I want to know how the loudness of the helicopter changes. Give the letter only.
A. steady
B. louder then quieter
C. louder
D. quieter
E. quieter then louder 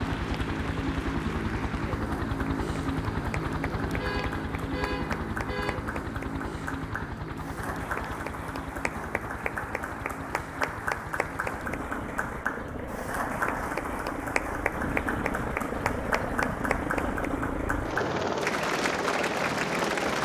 E.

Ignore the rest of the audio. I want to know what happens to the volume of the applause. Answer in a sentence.
The volume of the applause goes up.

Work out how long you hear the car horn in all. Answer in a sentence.
The car horn can be heard for 2 seconds in total.